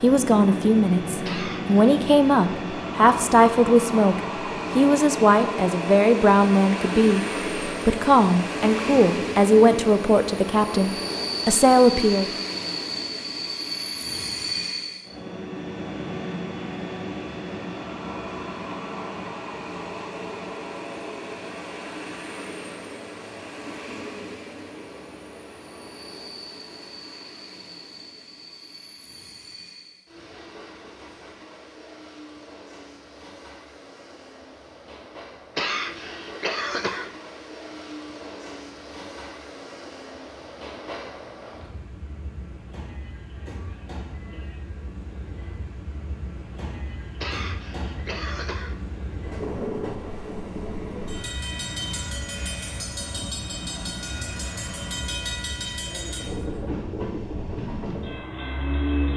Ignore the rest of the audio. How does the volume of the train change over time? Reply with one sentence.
The volume of the train goes down, then up.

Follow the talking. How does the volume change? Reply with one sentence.
The loudness of the talking stays about the same.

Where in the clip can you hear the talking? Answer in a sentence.
The talking can be heard from 0.0 to 12.3 s.